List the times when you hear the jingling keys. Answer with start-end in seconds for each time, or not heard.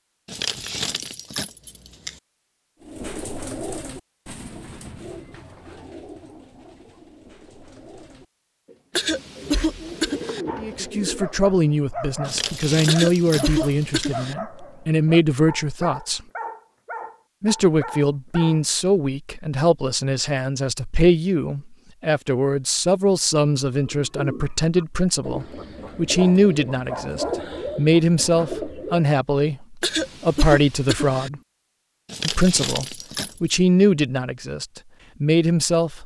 0.2-2.2, 12.2-14.2, 32.0-33.5.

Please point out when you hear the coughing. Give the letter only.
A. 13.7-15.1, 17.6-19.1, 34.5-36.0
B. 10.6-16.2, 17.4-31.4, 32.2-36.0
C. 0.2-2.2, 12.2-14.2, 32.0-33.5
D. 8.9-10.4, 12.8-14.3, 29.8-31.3
D.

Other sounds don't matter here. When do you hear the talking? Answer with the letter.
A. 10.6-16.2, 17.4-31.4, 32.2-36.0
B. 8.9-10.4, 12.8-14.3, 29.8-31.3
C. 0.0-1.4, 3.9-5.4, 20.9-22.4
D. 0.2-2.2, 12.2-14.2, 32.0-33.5
A.